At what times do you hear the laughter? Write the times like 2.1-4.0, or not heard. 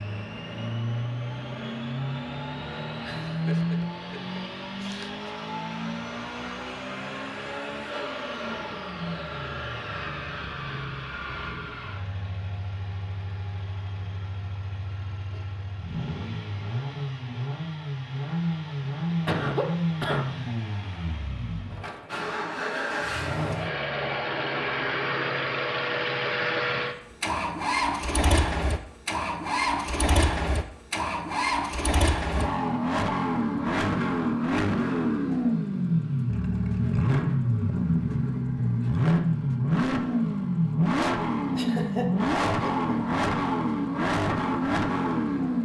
3.0-5.3, 19.2-20.2, 41.5-43.1.